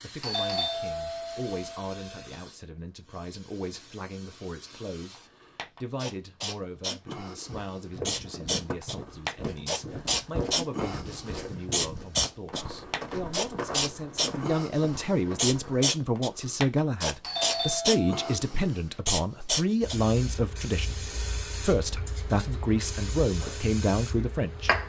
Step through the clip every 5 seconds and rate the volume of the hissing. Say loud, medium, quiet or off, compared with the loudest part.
quiet, medium, loud, loud, medium.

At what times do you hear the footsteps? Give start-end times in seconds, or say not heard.
7.5-15.9.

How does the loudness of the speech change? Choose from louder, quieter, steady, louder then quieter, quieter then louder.
louder.